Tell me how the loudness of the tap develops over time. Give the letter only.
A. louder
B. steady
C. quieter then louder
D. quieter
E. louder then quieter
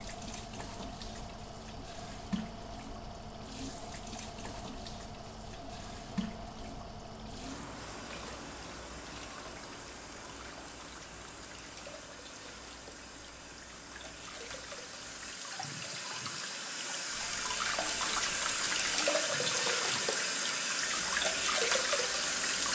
A.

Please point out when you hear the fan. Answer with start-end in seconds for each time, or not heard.
0.0-22.7.